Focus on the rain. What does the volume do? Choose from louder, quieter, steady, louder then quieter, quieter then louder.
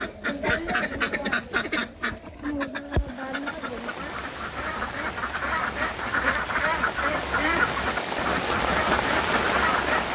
louder.